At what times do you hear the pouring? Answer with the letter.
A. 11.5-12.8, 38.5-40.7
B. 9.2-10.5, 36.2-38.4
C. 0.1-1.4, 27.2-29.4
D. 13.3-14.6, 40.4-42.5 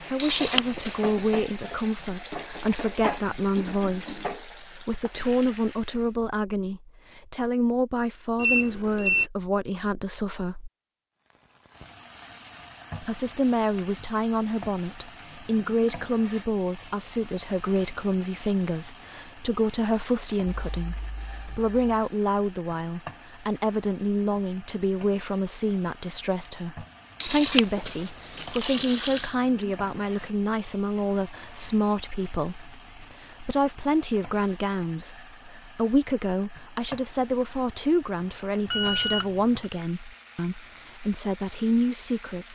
C.